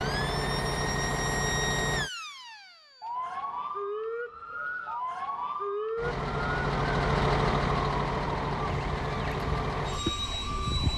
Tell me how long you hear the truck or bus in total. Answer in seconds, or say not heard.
7 s.